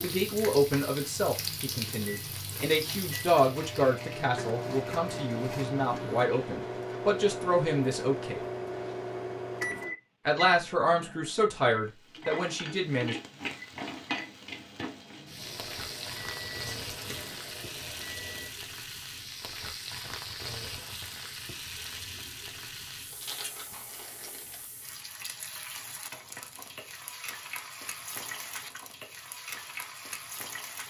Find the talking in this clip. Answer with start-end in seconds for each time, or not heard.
0.0-8.4, 10.2-13.2.